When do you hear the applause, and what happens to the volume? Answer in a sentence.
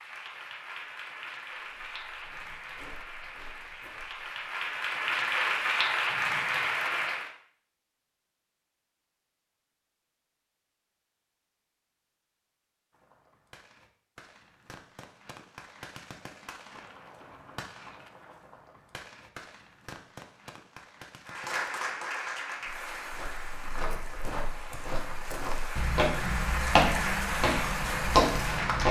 You can hear the applause from 0.0 to 7.3 s, getting louder; and from 21.2 to 28.8 s, getting quieter then louder.